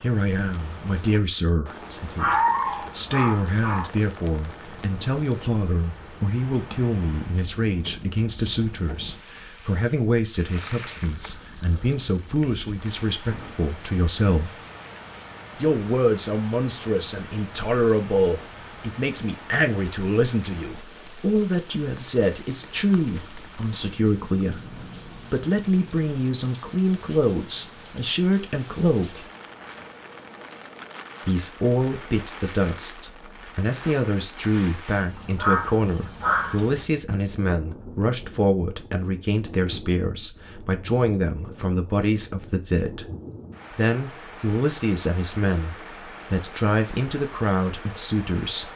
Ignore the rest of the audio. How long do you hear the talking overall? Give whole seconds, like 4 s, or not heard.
45 s.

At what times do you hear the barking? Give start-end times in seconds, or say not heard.
2.1-3.9, 35.4-36.6.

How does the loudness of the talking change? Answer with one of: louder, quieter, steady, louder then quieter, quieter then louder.
steady.